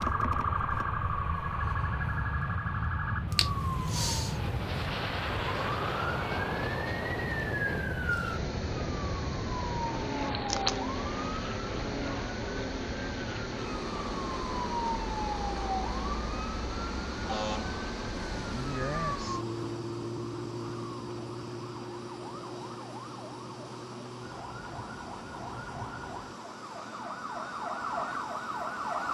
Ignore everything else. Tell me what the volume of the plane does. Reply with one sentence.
The loudness of the plane goes down.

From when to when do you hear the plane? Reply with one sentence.
The plane can be heard from 0.0 to 29.0 s.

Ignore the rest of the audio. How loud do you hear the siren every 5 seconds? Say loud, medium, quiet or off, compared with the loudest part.
loud, loud, loud, loud, medium, loud.